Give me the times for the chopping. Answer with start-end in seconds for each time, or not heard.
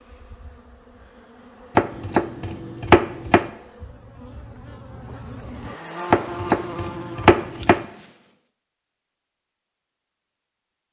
1.8-3.5, 6.1-7.8.